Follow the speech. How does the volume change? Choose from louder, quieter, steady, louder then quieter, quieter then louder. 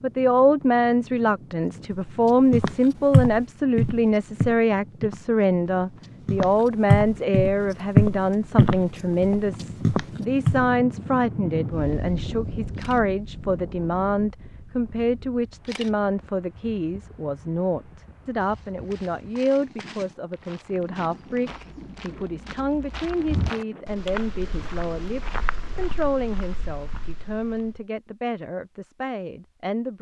quieter.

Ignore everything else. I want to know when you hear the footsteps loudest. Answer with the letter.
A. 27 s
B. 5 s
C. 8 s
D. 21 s
C.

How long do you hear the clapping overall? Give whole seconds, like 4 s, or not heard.
not heard.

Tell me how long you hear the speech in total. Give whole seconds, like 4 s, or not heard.
30 s.